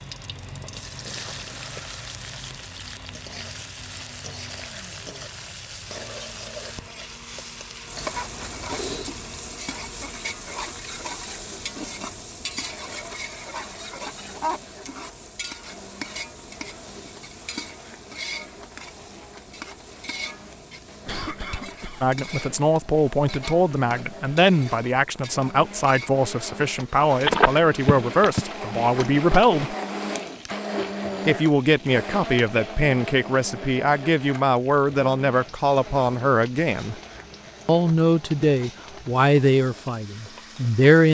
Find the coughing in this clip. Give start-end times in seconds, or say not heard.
8.0-9.1, 21.1-22.1.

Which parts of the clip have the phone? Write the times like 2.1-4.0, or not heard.
27.2-28.4.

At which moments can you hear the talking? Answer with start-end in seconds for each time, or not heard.
22.0-29.8, 31.2-37.0, 37.6-41.0.